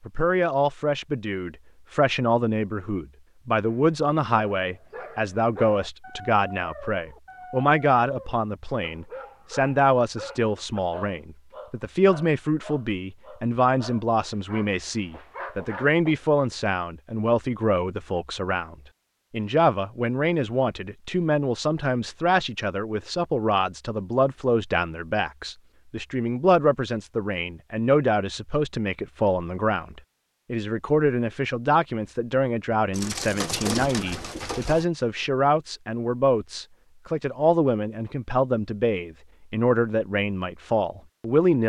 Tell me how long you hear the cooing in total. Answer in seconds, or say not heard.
2 s.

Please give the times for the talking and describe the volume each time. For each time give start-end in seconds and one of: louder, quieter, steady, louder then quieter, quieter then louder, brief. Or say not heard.
0.1-41.6 steady.